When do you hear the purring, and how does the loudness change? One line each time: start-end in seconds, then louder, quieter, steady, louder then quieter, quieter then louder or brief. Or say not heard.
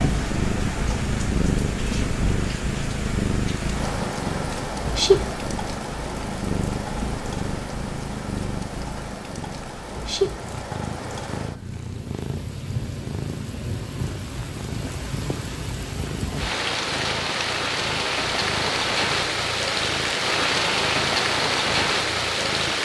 0.0-22.8 quieter.